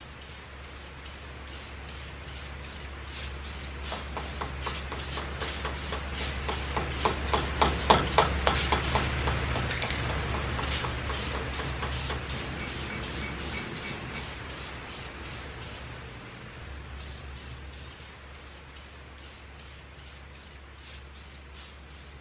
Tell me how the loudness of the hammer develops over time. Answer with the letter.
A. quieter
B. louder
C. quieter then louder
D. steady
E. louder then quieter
E.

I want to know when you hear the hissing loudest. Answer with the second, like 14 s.
9 s.